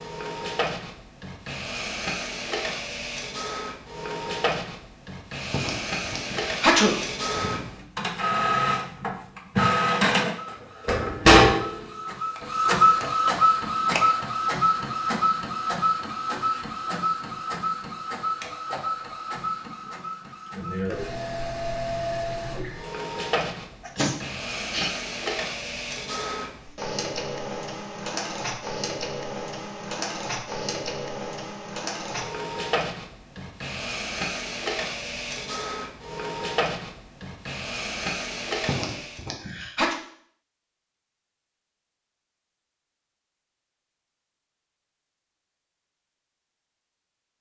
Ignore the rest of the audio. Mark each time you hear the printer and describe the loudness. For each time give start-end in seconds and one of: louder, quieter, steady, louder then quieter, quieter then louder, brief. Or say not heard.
0.0-39.2 louder then quieter.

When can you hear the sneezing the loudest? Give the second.
7 s.